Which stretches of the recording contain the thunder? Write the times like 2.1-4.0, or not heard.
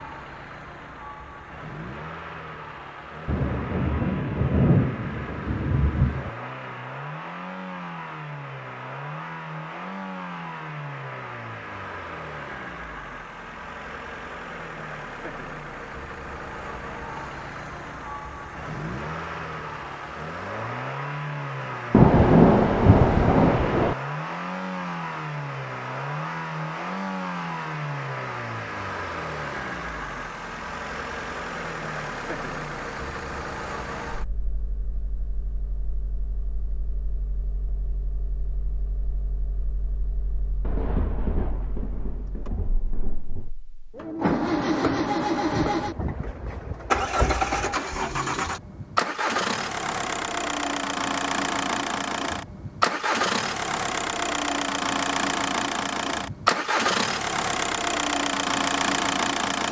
3.2-6.3, 21.9-23.9, 40.6-43.5.